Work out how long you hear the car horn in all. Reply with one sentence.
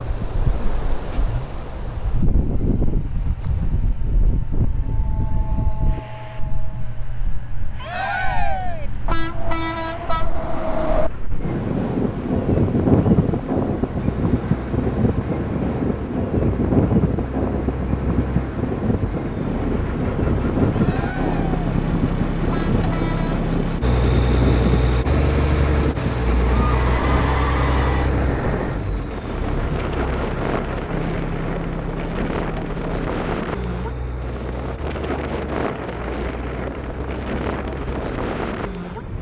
You can hear the car horn for 3 seconds altogether.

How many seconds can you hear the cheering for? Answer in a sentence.
The cheering can be heard for 4 seconds in total.